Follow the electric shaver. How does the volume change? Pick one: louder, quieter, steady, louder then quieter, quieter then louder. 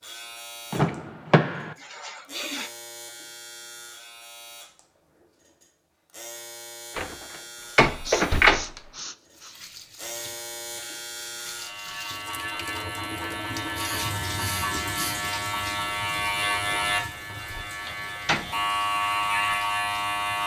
louder.